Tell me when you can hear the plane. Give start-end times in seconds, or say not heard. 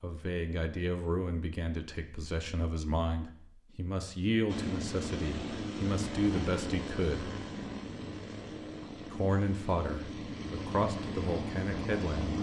4.5-12.3.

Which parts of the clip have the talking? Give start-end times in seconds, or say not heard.
0.0-7.3, 9.1-12.3.